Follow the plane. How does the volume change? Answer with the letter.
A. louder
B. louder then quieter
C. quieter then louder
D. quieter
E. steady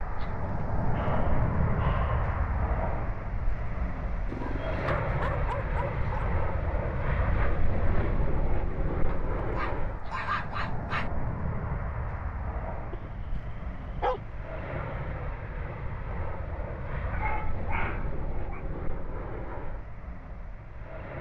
D.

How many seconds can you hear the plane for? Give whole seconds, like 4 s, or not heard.
21 s.